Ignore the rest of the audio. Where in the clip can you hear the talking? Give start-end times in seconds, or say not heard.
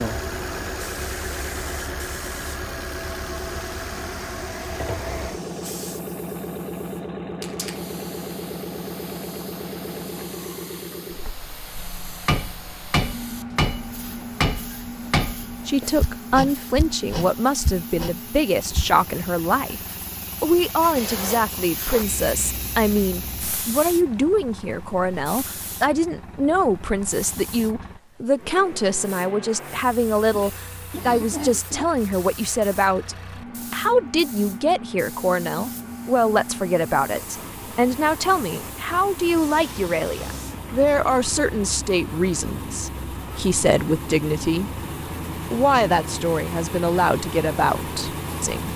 15.7-44.7, 45.5-48.7.